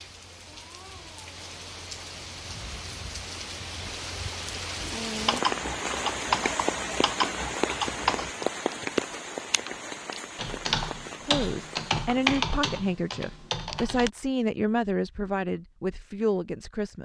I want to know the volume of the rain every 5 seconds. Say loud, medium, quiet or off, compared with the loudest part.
medium, loud, medium, off.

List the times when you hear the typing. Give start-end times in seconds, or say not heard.
5.2-14.1.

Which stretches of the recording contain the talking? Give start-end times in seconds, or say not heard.
11.2-17.0.